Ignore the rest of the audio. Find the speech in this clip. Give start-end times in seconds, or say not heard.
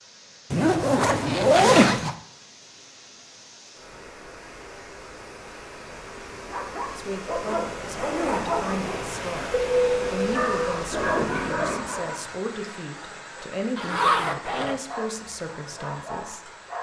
7.0-16.5.